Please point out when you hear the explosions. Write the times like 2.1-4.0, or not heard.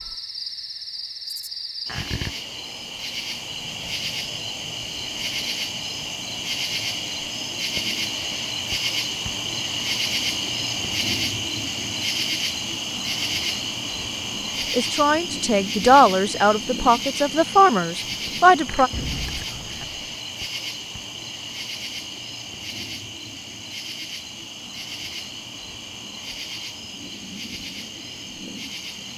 18.9-20.1.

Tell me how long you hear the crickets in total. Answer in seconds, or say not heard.
29 s.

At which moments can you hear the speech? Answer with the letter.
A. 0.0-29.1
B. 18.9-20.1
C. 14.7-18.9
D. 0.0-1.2
C.